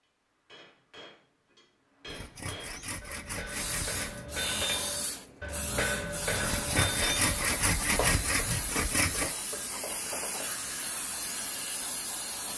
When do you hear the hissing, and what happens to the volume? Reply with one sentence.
The hissing can be heard from 3.5 to 12.5 s, at a steady volume.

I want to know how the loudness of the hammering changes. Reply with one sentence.
The loudness of the hammering goes up, then down.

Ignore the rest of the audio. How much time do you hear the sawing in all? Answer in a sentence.
You can hear the sawing for 5 seconds altogether.